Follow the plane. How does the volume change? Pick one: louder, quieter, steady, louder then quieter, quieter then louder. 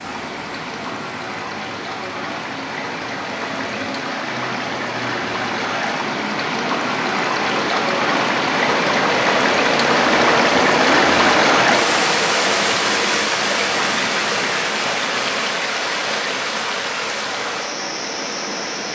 louder then quieter.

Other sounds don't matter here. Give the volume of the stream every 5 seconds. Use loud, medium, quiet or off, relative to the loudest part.
medium, loud, loud, medium.